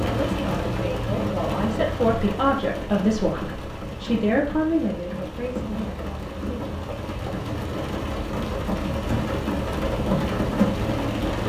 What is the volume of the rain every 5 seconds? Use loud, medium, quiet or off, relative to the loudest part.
medium, medium, loud.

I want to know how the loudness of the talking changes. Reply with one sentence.
The volume of the talking goes up, then down.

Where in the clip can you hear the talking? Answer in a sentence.
You can hear the talking from 0.0 to 6.7 s.